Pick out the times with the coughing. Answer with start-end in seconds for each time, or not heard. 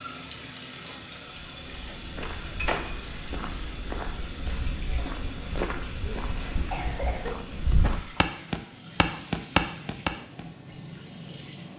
6.2-7.3.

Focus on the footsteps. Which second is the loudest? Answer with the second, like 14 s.
9 s.